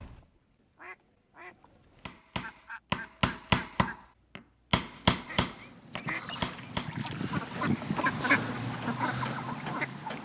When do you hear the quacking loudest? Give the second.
8 s.